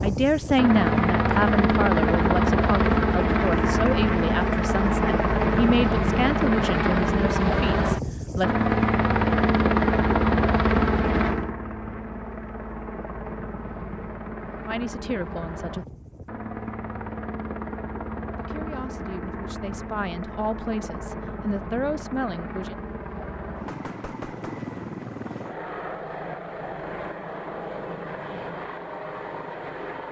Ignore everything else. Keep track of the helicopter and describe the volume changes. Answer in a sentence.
The loudness of the helicopter goes down.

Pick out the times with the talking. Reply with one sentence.
You can hear the talking from 0.0 to 8.5 s, from 14.7 to 15.8 s and from 18.4 to 22.8 s.